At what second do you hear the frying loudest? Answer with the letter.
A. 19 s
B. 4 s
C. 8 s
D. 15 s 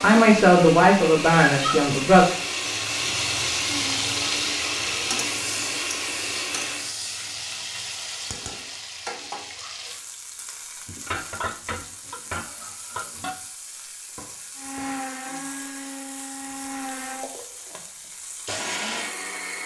B.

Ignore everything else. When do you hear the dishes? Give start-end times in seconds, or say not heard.
10.8-13.4.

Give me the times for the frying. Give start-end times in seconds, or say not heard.
0.0-19.6.